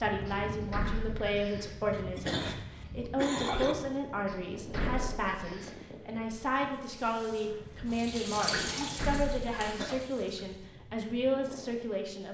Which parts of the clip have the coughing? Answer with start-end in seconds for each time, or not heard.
1.9-3.8, 9.8-10.2.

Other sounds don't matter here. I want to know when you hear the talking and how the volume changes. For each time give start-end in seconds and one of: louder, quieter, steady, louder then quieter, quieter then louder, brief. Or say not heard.
0.0-12.2 steady.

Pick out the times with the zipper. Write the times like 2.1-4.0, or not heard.
not heard.